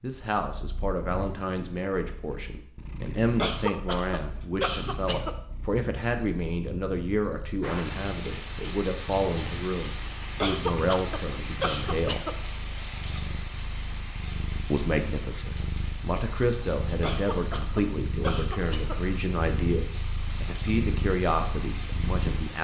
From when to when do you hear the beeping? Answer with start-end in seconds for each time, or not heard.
not heard.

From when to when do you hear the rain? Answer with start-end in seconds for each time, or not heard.
7.6-22.5.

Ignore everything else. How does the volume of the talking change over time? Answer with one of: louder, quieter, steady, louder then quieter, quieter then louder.
steady.